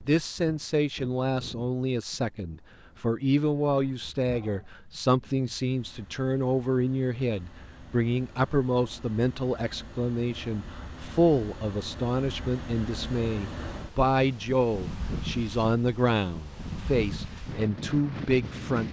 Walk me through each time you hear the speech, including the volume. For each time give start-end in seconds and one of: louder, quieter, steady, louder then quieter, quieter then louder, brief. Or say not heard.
0.0-18.8 steady.